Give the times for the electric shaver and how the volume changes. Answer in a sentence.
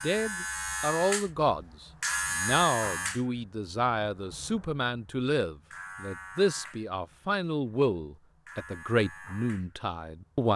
You can hear the electric shaver from 0.0 to 10.5 s, getting quieter.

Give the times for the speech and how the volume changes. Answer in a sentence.
You can hear the speech from 0.0 to 10.5 s, at a steady volume.